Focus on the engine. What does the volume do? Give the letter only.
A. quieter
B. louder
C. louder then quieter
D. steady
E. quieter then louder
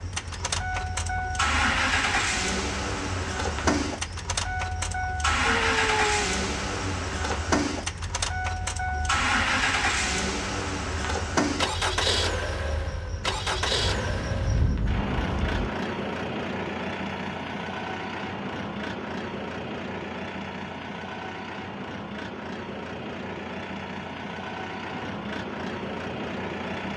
A.